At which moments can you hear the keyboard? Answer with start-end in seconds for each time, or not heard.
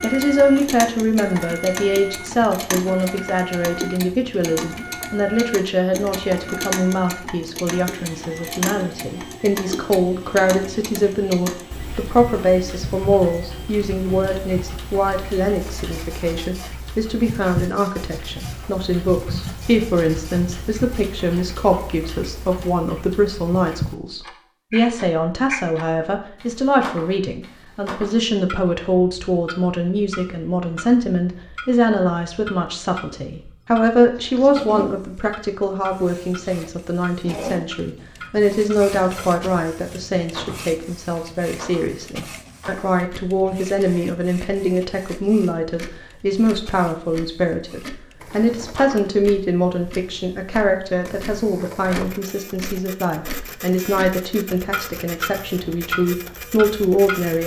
not heard.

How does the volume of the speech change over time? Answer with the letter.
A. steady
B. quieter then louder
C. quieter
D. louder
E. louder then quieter
A.